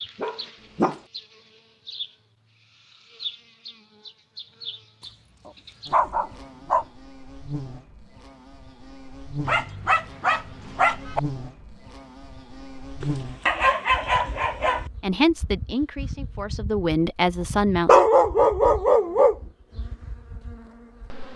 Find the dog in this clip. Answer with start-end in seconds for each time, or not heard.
0.1-1.0, 5.0-6.8, 9.4-11.2, 13.0-14.8, 17.9-19.4.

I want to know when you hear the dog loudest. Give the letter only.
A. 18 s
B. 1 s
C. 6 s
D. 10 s
A.